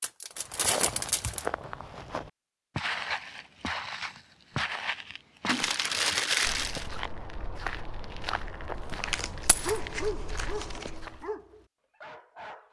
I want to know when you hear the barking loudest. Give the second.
10 s.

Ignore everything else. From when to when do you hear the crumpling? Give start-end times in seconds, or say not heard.
0.0-1.4, 5.5-6.9, 9.0-10.9.